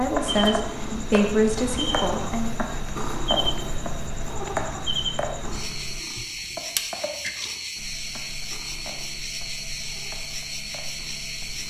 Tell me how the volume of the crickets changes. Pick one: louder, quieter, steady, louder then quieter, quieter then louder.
steady.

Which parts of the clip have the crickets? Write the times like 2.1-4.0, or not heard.
0.0-11.6.